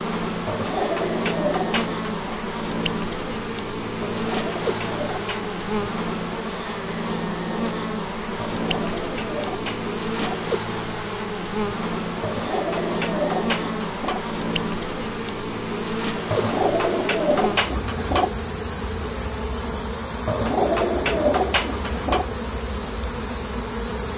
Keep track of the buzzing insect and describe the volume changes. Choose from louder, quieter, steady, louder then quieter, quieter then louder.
steady.